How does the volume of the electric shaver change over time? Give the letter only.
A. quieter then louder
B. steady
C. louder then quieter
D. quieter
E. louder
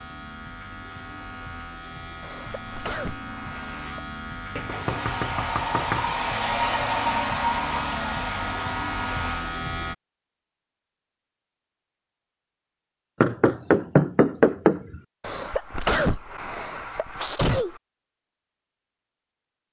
E.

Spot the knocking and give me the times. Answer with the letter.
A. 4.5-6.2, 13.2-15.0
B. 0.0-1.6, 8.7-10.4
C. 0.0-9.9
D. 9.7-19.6
A.